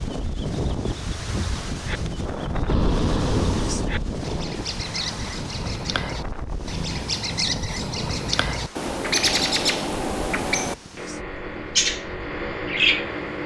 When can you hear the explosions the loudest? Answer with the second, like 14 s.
3 s.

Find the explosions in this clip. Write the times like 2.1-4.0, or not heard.
2.6-4.2.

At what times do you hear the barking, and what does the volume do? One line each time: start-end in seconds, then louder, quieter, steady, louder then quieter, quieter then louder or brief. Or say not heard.
not heard.